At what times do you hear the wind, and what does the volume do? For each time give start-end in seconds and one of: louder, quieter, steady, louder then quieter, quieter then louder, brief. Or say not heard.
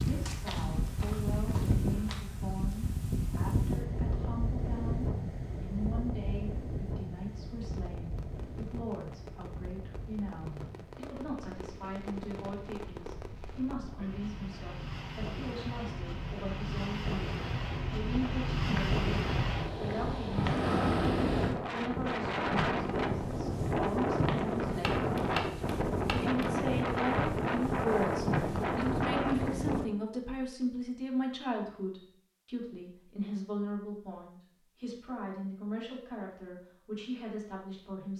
0.0-29.9 quieter then louder.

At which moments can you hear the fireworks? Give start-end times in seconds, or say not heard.
7.6-13.8.